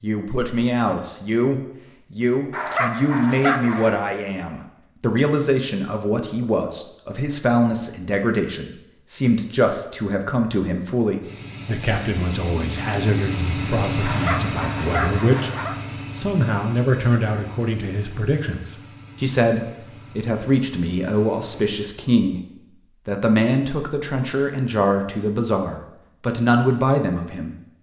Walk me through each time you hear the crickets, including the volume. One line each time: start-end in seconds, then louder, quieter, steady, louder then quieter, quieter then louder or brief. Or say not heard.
not heard.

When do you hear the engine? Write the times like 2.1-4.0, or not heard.
11.2-21.8.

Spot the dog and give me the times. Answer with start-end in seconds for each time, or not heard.
2.5-4.0, 14.0-15.8.